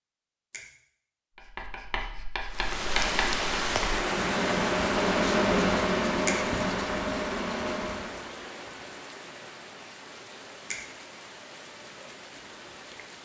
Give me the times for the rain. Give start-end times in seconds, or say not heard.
2.5-13.2.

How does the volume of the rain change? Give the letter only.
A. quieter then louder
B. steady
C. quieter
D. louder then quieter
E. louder
C.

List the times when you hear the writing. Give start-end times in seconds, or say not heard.
1.4-8.2.